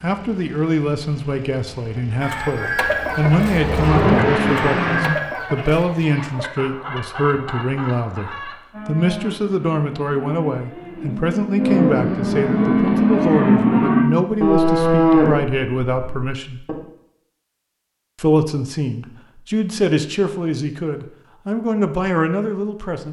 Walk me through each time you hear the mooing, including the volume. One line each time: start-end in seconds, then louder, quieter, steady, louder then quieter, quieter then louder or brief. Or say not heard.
8.7-16.8 louder.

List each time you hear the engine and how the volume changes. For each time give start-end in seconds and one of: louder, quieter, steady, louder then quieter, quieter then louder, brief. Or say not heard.
0.0-5.2 louder.